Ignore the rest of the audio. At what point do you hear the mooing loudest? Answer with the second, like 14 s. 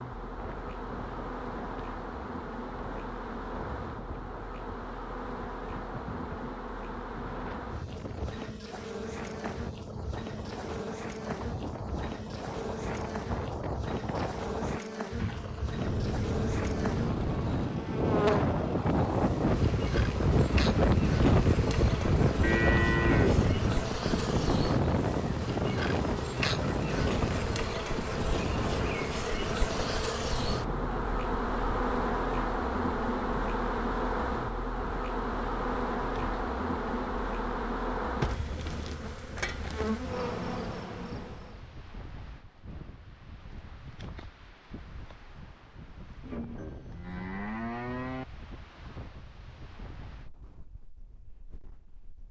23 s.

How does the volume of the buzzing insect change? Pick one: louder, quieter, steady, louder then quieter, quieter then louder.
louder.